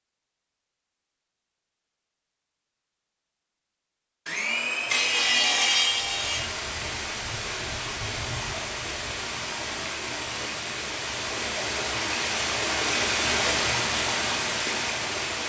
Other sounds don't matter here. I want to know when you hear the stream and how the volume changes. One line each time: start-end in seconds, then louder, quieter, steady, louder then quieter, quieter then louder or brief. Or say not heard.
5.8-15.4 louder.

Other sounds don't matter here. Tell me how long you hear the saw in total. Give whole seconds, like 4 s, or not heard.
2 s.